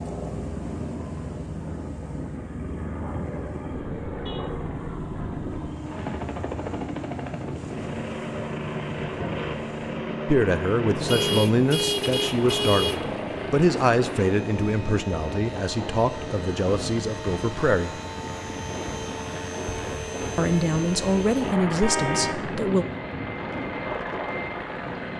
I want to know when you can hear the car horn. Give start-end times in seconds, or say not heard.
3.7-5.7, 11.1-13.1, 21.8-22.4.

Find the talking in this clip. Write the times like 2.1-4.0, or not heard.
10.2-18.0, 20.4-22.9.